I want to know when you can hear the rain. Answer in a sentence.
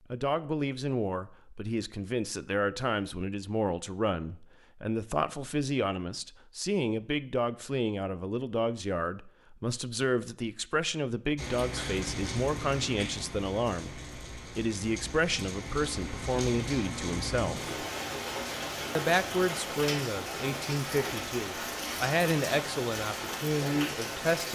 The rain can be heard from 11.3 to 24.5 s.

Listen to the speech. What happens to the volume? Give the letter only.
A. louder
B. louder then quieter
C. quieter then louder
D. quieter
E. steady
E.